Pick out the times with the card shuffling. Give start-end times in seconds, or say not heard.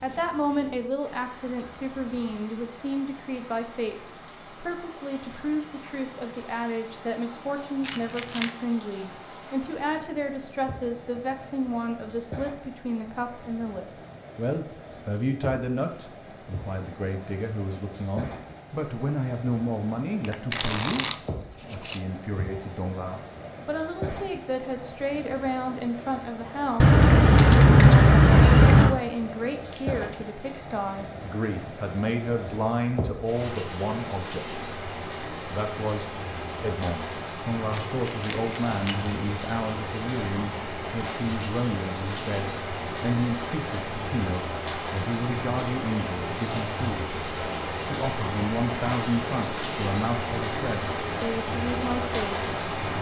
20.2-22.1, 29.6-30.8.